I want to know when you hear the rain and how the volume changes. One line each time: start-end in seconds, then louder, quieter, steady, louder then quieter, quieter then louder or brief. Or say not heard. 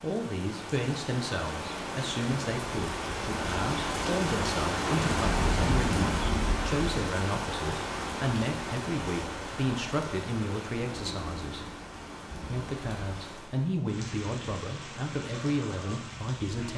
0.0-16.7 louder then quieter.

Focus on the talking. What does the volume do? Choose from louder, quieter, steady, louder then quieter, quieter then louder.
steady.